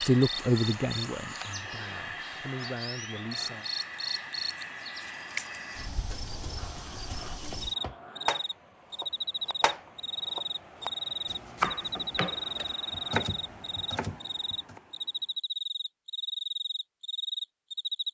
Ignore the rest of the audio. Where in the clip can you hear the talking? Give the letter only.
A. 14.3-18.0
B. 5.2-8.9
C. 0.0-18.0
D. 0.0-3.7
D.